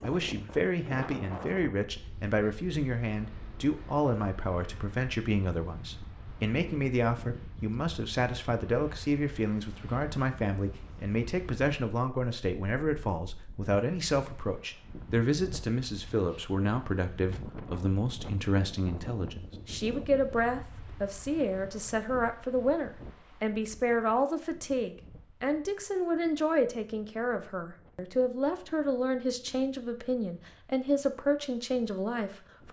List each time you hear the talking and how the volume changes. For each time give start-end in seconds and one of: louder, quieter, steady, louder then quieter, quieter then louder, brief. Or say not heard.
0.0-32.6 steady.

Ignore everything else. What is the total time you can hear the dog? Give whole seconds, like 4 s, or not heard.
not heard.